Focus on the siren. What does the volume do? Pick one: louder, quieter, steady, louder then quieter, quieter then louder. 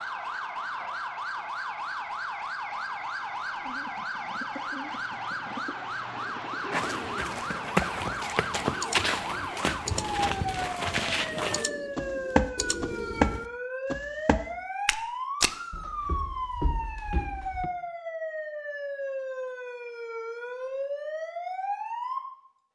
steady.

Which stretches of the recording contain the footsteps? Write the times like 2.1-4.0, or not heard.
6.7-17.7.